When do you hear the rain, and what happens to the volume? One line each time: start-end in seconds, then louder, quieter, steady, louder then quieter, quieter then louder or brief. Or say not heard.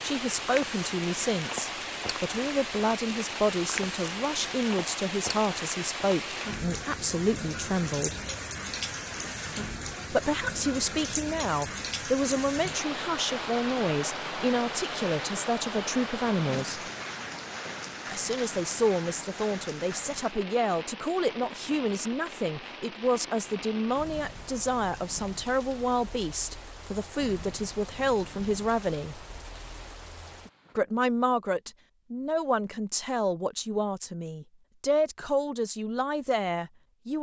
0.0-30.8 quieter.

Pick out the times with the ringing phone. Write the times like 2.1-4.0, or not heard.
not heard.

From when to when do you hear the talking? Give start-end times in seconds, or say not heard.
0.0-8.2, 10.1-16.8, 18.1-29.2, 30.8-37.1.